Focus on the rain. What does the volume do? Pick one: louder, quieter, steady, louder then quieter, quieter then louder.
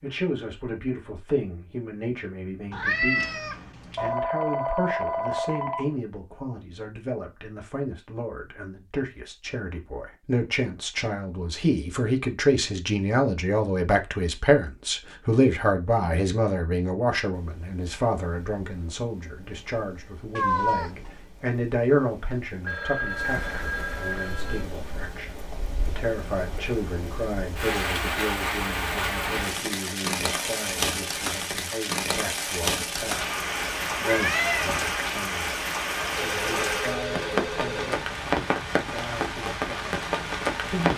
louder.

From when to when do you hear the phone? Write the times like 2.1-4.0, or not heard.
4.0-6.0, 22.6-24.6, 36.1-38.0.